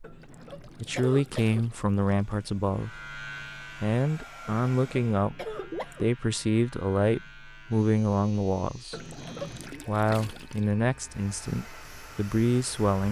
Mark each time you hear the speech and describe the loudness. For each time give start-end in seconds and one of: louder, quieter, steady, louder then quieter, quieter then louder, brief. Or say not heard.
0.0-13.0 steady.